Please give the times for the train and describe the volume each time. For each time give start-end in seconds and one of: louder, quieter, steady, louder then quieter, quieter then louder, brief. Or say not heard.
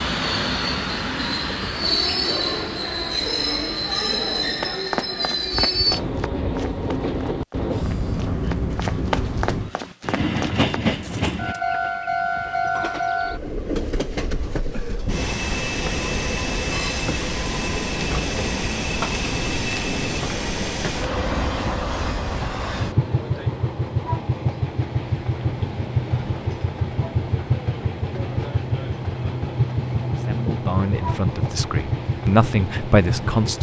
0.0-33.5 steady.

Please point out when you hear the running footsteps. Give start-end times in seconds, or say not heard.
4.6-11.6.